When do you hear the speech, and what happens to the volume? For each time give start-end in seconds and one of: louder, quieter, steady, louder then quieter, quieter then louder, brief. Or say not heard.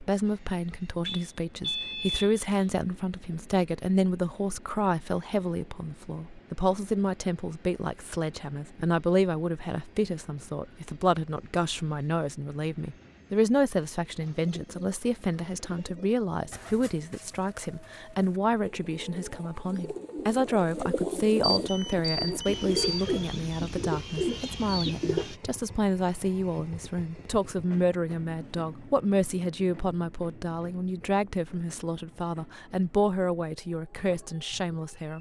0.0-35.1 steady.